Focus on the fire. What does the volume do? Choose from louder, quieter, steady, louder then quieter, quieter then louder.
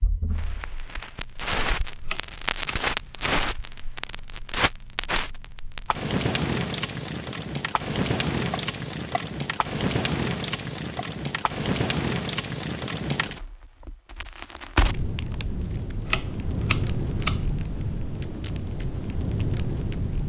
steady.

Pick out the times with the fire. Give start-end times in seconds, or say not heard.
0.0-20.2.